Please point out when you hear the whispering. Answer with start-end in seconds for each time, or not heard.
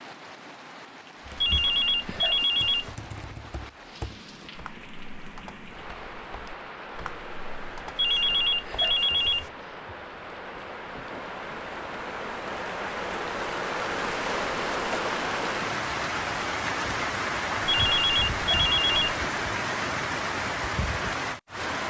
not heard.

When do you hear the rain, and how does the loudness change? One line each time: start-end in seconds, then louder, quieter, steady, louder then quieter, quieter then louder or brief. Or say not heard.
0.0-21.8 louder.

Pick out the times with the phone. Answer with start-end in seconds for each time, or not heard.
1.4-2.9, 8.0-9.5, 17.7-18.9.